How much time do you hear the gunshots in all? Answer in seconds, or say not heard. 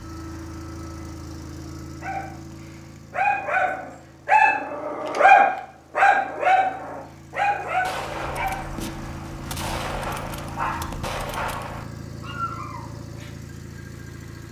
4 s.